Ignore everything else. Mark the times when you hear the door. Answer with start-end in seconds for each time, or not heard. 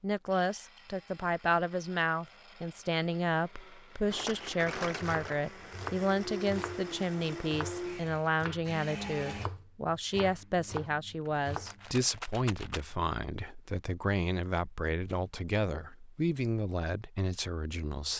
not heard.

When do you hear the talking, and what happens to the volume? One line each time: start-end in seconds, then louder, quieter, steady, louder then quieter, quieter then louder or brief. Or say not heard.
0.0-18.1 steady.